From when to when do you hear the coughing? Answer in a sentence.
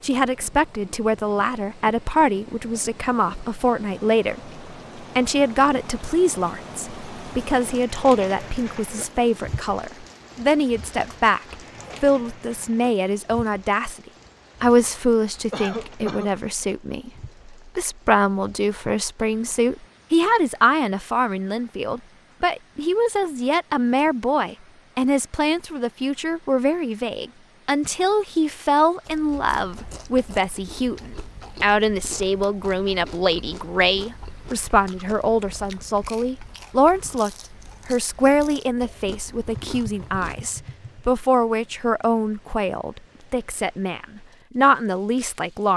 The coughing can be heard from 15.5 to 16.4 s.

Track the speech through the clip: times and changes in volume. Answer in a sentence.
The speech can be heard from 0.0 to 13.9 s, at a steady volume; and from 14.6 to 45.7 s, at a steady volume.